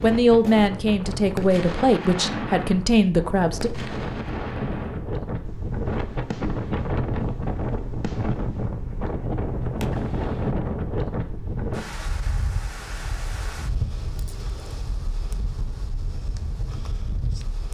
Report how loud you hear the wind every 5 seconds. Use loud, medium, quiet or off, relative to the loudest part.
medium, loud, loud, medium.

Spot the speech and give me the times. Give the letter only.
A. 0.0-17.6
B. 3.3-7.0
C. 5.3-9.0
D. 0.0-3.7
D.